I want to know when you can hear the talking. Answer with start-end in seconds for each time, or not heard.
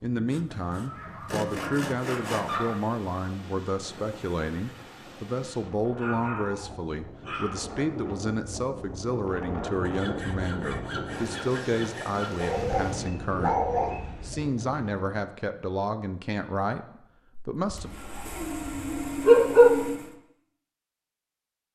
0.0-17.9.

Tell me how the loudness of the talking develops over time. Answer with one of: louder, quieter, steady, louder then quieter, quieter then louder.
steady.